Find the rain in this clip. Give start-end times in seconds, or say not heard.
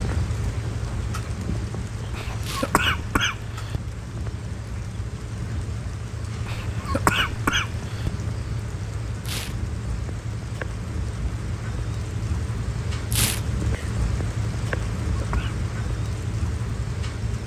0.0-17.4.